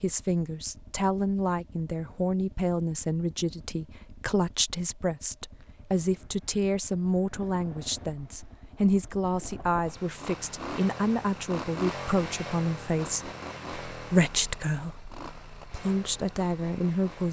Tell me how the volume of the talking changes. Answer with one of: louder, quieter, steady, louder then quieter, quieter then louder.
steady.